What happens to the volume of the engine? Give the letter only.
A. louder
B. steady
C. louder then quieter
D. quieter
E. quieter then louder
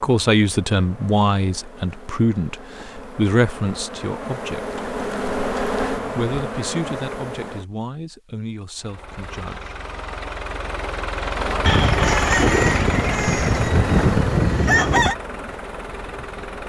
C.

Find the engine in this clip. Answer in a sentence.
The engine can be heard from 8.8 to 16.6 s.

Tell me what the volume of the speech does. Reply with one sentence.
The volume of the speech goes down.